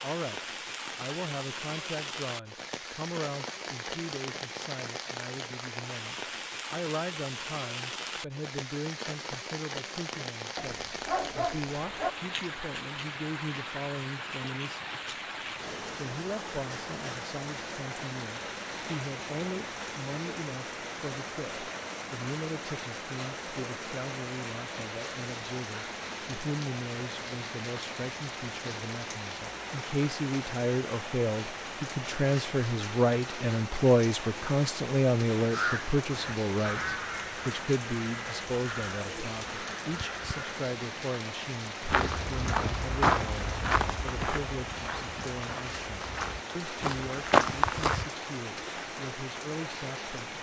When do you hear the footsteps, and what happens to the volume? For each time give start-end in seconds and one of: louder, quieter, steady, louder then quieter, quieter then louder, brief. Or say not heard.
41.9-48.0 quieter then louder.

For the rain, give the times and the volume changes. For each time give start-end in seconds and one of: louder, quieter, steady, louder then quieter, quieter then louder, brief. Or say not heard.
0.0-50.3 steady.